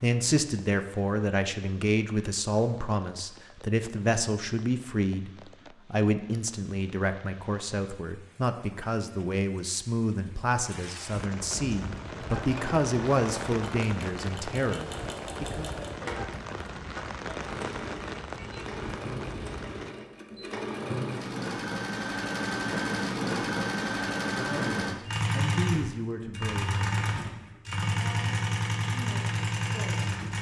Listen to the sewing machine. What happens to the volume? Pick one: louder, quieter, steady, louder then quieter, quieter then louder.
louder.